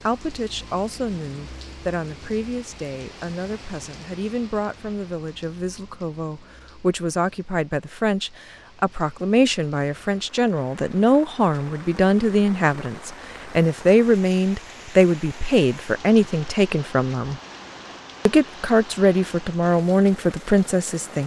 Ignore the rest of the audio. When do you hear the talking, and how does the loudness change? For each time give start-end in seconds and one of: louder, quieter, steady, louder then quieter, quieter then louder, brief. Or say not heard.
0.0-17.4 louder
18.2-21.2 brief.